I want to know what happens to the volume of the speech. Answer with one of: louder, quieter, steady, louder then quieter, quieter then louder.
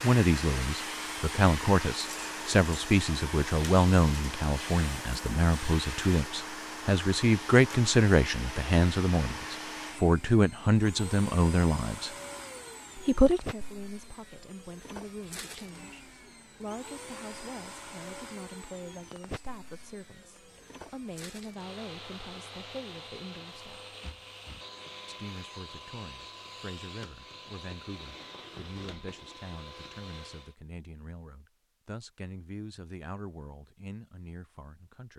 quieter.